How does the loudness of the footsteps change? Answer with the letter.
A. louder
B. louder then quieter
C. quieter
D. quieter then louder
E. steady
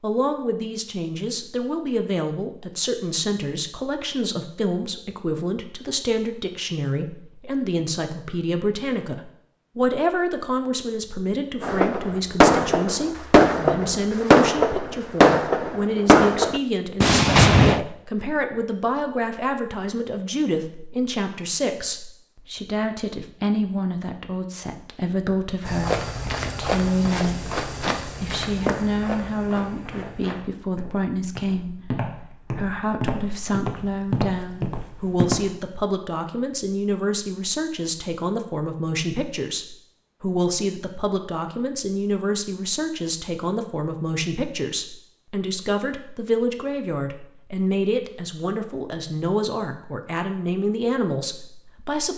D.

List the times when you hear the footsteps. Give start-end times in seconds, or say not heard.
25.6-35.5.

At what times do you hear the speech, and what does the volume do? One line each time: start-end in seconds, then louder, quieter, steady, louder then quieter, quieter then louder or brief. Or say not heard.
0.0-52.1 steady.